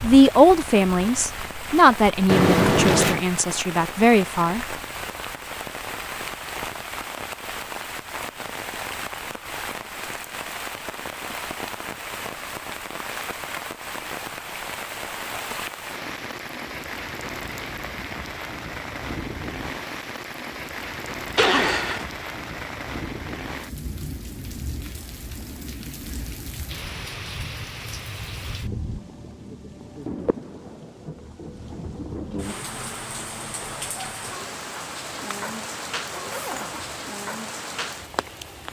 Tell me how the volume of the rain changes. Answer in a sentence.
The loudness of the rain stays about the same.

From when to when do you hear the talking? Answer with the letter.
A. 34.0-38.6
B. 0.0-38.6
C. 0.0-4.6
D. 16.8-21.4
C.